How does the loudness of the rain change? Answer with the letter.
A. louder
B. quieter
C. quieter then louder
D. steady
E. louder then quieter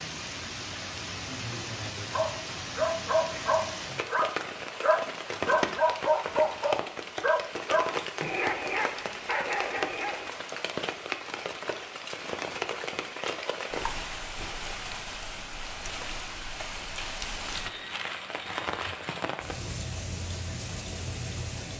D.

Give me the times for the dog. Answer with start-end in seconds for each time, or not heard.
2.1-10.3.